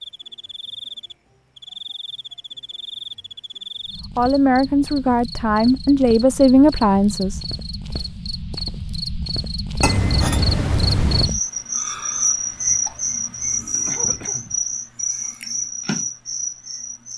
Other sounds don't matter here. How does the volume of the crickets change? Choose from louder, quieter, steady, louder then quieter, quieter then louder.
louder.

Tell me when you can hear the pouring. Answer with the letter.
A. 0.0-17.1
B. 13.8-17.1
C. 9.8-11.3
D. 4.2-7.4
C.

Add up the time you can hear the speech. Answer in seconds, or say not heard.
3 s.